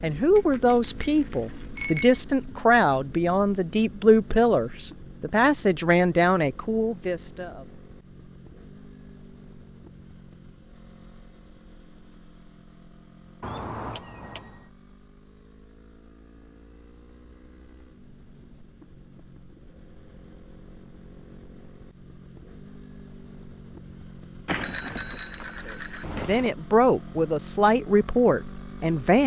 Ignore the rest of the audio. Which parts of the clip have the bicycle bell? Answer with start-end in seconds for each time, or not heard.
0.3-2.2, 13.4-14.7, 24.4-26.5.